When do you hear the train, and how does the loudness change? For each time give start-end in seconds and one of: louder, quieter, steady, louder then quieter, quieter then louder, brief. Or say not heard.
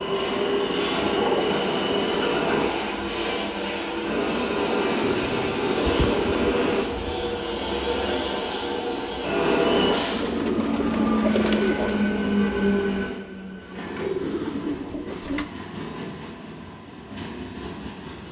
0.0-18.2 quieter.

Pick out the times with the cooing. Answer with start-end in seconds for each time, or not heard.
1.0-2.5, 5.0-7.5, 9.7-12.1, 13.9-15.5.